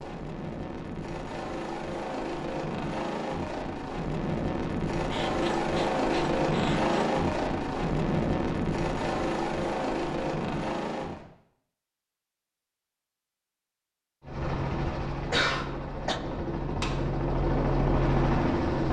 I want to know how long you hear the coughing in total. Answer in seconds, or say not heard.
3 s.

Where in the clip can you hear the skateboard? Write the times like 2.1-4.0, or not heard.
not heard.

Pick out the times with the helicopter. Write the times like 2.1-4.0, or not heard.
0.0-11.2, 14.2-18.8.